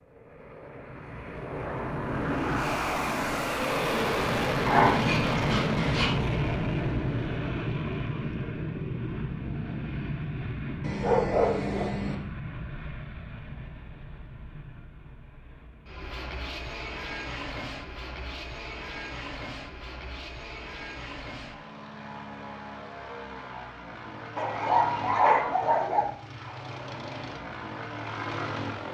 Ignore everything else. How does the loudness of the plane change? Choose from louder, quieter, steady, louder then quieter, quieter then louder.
quieter.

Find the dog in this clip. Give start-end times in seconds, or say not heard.
4.7-6.2, 10.8-12.2, 24.4-26.1.